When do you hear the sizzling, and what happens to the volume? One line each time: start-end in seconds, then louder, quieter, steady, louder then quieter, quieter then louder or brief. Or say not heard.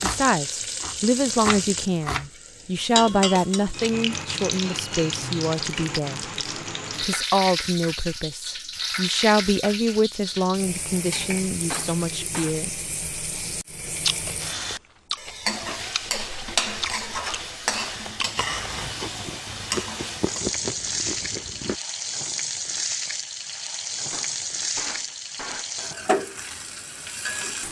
0.0-27.6 steady.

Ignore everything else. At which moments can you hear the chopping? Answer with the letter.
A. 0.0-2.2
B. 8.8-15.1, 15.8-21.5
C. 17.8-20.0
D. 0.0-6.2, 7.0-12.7
A.